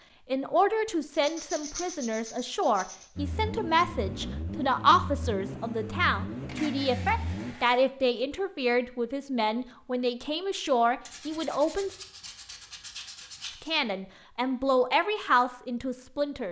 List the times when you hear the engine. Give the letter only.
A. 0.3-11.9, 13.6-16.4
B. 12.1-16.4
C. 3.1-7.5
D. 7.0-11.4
C.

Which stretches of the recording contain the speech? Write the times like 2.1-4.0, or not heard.
0.3-11.9, 13.6-16.4.